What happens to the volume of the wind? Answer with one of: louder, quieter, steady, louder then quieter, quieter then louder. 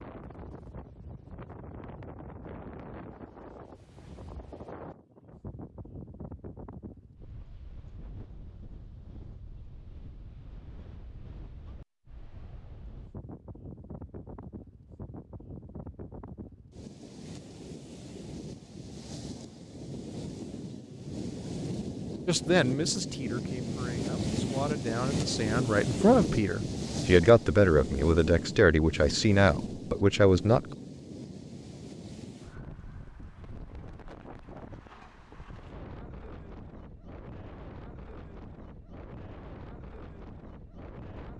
louder then quieter.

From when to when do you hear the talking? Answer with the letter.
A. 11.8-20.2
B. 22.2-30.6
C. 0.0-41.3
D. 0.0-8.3
B.